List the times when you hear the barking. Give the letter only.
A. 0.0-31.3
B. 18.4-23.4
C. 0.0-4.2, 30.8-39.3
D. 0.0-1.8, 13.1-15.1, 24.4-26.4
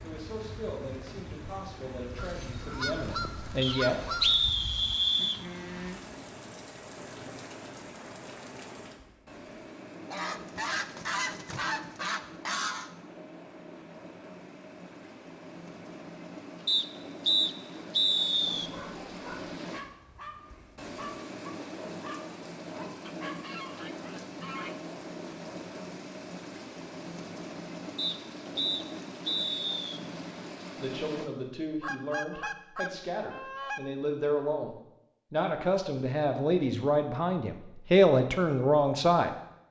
B.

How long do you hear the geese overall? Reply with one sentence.
You can hear the geese for 9 seconds altogether.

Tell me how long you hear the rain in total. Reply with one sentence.
The rain can be heard for 31 seconds in total.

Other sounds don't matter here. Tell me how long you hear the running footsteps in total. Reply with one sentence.
You can't hear the running footsteps here.